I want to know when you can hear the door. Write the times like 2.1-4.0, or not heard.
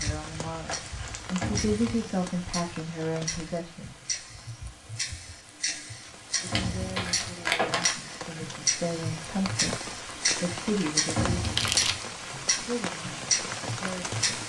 1.4-2.0, 6.5-7.0, 11.2-11.9.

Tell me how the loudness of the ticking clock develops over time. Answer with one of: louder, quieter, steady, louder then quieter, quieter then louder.
louder.